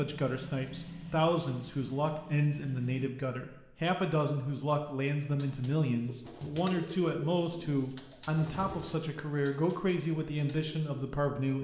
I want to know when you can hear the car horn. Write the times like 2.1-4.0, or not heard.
not heard.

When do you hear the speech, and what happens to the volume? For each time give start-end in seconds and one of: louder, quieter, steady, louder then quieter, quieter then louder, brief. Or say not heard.
0.0-11.5 steady.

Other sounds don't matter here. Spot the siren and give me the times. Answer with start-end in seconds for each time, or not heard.
not heard.